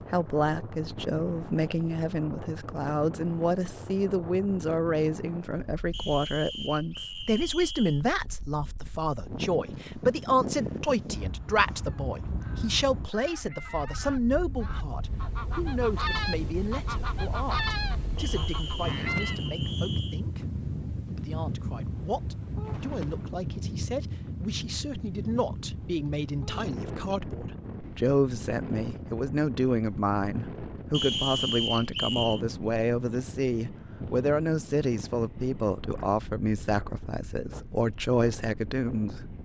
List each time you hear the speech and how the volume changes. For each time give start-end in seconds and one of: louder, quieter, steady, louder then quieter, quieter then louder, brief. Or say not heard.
0.0-39.2 quieter then louder.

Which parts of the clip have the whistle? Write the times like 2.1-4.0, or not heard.
5.9-8.1, 18.1-20.2, 30.9-32.4.